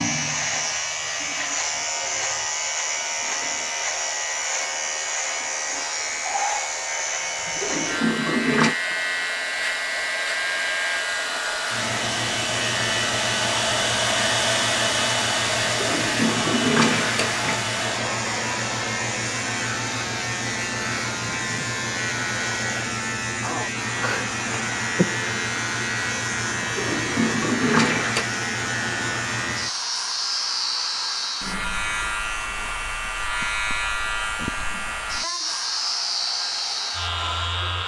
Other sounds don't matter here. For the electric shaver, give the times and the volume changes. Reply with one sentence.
You can hear the electric shaver from 0.0 to 37.8 s, at a steady volume.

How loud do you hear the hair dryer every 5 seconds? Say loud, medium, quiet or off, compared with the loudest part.
medium, medium, loud, loud, medium, medium, medium, medium.